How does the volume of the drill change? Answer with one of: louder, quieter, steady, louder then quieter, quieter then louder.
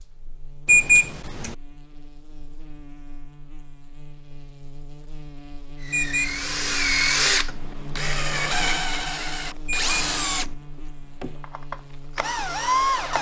quieter.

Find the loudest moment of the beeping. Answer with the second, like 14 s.
1 s.